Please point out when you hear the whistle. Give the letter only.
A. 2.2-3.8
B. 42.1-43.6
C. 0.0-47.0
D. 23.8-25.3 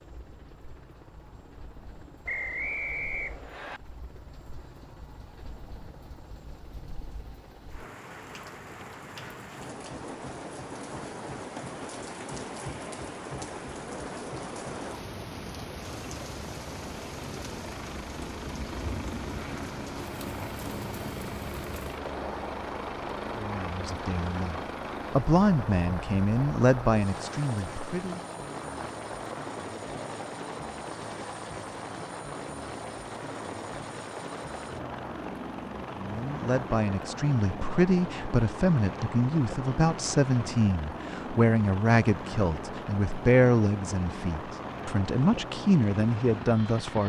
A.